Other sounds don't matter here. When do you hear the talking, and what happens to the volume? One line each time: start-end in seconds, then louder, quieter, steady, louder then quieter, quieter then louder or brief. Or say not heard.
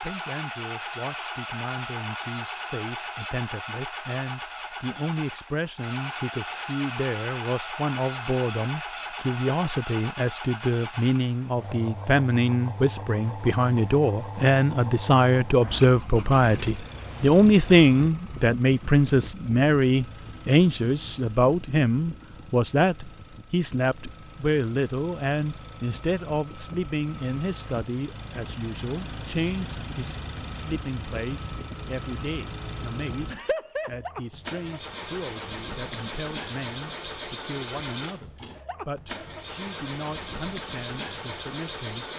0.0-42.1 louder then quieter.